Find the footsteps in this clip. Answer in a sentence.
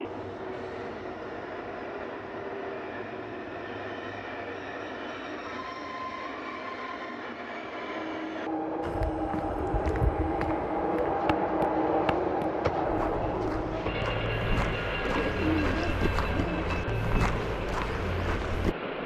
The footsteps can be heard from 8.8 to 18.8 s.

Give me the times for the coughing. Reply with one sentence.
You can't hear the coughing here.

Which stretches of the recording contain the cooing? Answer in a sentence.
The cooing can be heard from 15.0 to 16.7 s.